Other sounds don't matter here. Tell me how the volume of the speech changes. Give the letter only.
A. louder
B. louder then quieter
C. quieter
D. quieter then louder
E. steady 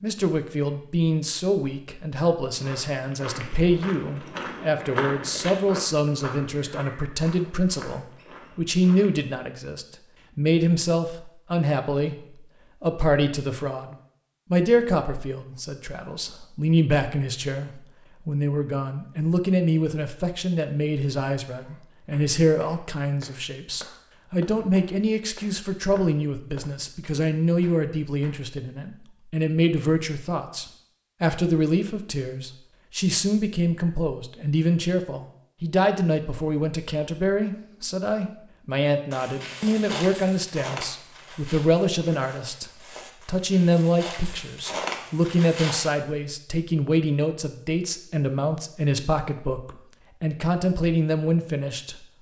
E.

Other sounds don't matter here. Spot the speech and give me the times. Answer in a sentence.
The speech can be heard from 0.0 to 52.0 s.